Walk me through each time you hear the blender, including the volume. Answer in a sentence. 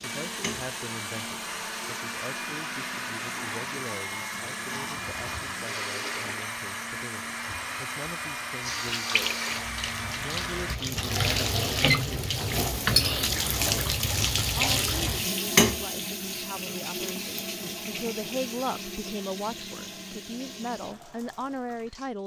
The blender can be heard from 0.0 to 10.8 s, at a steady volume.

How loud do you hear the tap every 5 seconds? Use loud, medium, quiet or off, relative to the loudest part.
quiet, medium, loud, loud, quiet.